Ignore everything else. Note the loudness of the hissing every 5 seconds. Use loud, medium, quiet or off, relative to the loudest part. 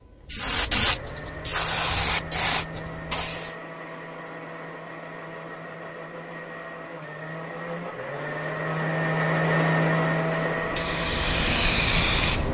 loud, off, loud.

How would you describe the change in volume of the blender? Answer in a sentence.
The volume of the blender goes up.